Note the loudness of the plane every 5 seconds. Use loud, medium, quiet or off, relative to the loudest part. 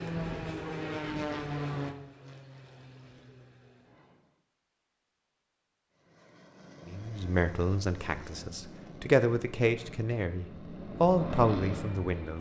loud, medium, loud.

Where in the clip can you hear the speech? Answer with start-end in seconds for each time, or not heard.
6.9-12.3.